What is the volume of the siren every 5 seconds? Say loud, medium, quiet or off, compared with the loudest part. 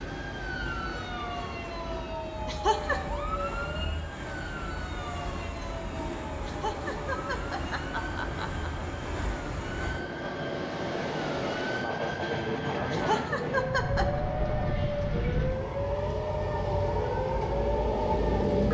loud, medium, loud, loud.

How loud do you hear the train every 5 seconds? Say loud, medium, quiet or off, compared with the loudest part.
medium, medium, loud, loud.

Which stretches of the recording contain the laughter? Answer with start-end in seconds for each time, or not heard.
2.5-3.0, 6.5-8.7, 12.9-14.2.